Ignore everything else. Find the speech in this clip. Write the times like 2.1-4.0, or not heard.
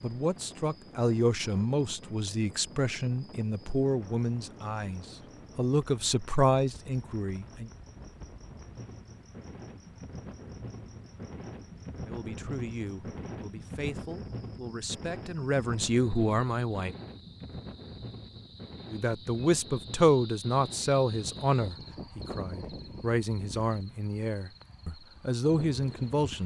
0.0-7.7, 12.1-16.9, 18.9-26.4.